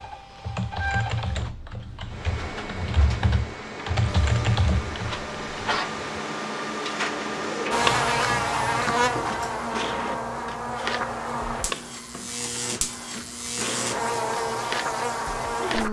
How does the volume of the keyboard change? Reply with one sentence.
The loudness of the keyboard goes down, then up.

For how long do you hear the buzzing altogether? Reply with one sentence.
The buzzing can be heard for 8 seconds in total.